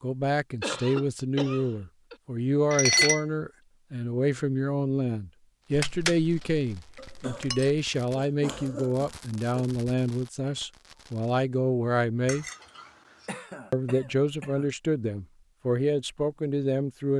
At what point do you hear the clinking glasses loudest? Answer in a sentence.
The loudest moment of the clinking glasses is at 3 seconds.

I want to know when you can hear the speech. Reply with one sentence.
You can hear the speech from 0.0 to 12.4 s and from 13.7 to 17.1 s.